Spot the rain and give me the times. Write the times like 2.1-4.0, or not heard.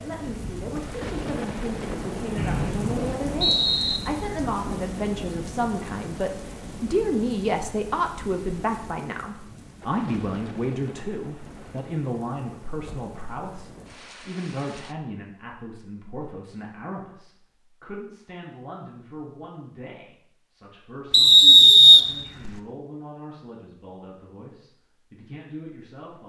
0.0-14.9.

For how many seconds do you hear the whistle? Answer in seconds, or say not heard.
3 s.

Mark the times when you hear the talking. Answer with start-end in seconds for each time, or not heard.
0.0-26.2.